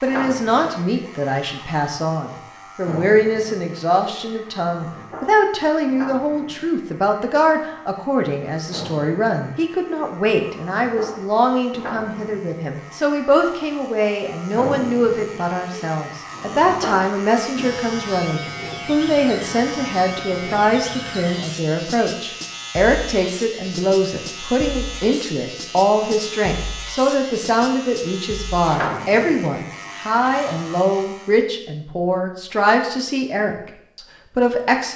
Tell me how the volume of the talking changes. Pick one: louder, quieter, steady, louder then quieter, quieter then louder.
steady.